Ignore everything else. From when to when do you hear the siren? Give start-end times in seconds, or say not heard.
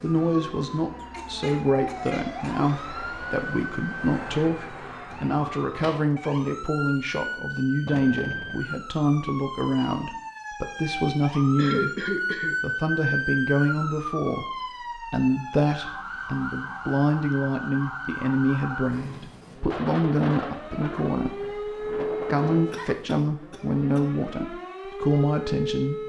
0.0-26.0.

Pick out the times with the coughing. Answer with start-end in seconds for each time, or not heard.
1.0-2.7, 11.6-12.6, 22.4-24.1.